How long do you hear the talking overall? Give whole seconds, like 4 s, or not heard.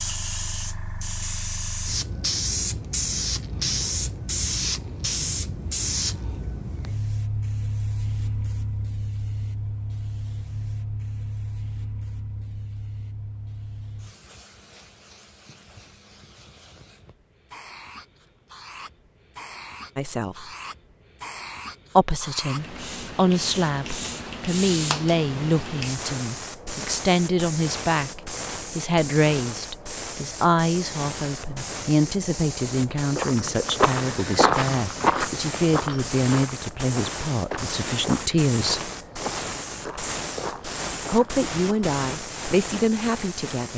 20 s.